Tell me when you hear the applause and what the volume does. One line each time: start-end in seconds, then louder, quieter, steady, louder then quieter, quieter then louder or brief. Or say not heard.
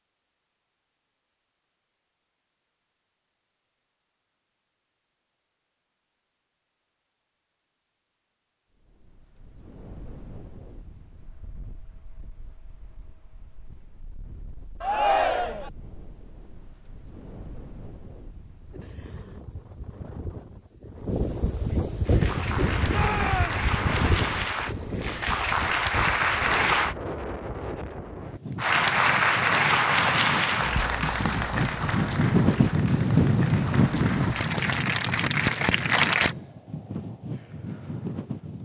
22.1-26.9 louder
28.6-36.4 quieter then louder.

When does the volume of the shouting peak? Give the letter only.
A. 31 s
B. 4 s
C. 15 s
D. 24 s
C.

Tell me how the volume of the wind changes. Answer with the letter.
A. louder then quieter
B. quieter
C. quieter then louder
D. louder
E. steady
D.